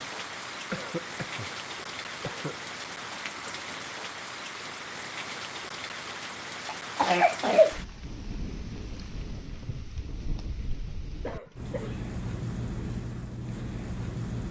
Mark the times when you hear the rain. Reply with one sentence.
You can hear the rain from 0.0 to 14.4 s.